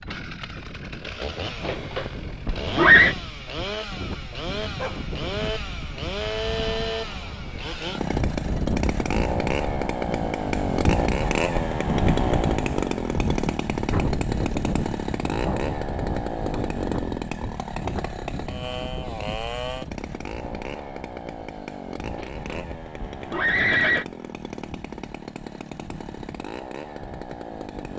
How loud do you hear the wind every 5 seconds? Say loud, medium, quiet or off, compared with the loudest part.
medium, medium, loud, medium, quiet, quiet.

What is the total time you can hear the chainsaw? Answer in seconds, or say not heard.
28 s.